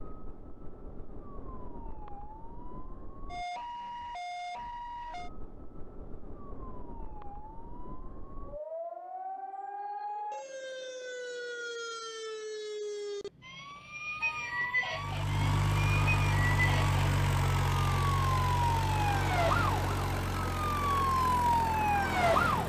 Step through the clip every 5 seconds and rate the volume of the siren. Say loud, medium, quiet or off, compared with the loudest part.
quiet, quiet, medium, medium, loud.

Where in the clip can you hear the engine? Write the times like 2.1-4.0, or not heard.
14.9-22.6.